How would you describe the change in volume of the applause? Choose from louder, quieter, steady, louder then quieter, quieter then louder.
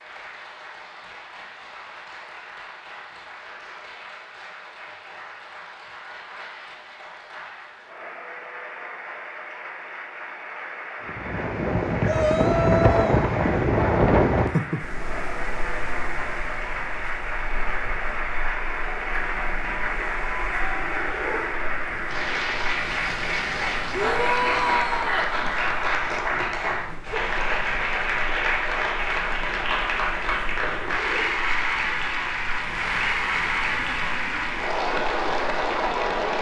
louder.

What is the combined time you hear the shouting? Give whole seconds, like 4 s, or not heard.
3 s.